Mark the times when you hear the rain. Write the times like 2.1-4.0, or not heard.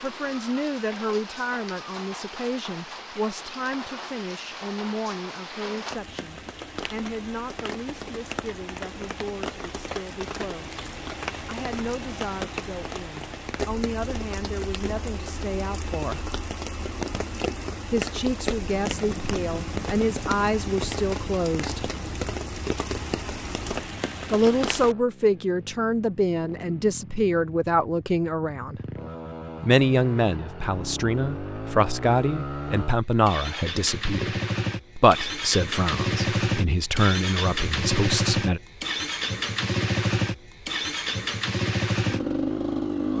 0.0-24.9.